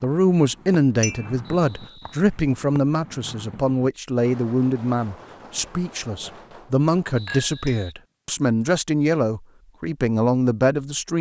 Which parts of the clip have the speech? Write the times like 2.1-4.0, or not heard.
0.0-11.1.